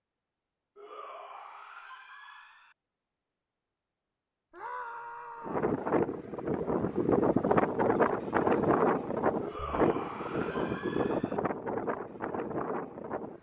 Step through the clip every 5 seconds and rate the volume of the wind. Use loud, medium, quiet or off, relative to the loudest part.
off, loud, medium.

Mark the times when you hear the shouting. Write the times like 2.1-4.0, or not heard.
0.8-2.8, 4.5-5.7, 9.4-11.4.